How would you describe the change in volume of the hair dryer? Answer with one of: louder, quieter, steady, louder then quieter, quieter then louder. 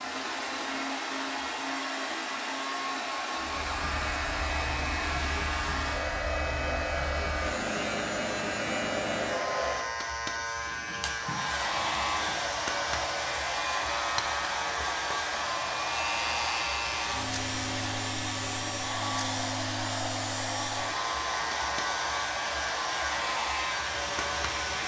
steady.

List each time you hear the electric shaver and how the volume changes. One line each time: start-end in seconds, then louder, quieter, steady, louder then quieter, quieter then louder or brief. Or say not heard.
3.4-24.8 steady.